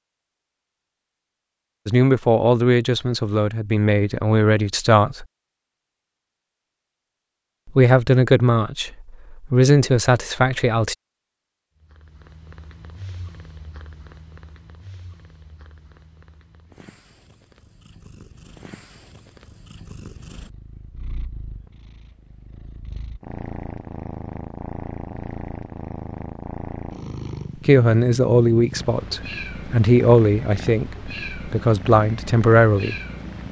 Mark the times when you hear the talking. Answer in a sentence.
The talking can be heard from 1.9 to 5.2 s, from 7.8 to 10.9 s and from 27.6 to 33.0 s.